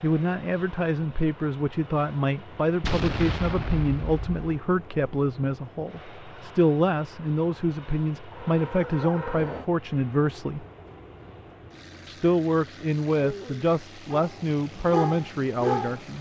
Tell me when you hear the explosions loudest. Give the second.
3 s.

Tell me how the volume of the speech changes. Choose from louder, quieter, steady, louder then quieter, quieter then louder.
steady.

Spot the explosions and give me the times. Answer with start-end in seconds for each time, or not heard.
2.8-4.5.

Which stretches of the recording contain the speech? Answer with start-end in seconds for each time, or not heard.
0.0-10.7, 12.1-16.1.